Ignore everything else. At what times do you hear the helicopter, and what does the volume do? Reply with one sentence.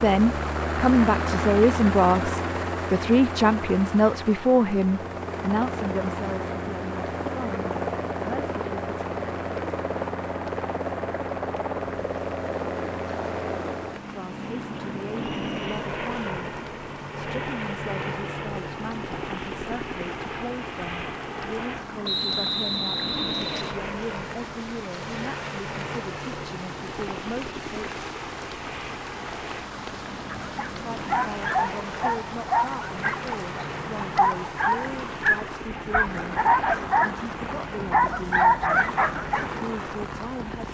The helicopter can be heard from 0.0 to 40.6 s, getting quieter.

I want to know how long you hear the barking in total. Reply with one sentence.
The barking can be heard for 9 seconds in total.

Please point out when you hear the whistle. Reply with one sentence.
The whistle can be heard from 15.3 to 15.8 s and from 22.0 to 23.8 s.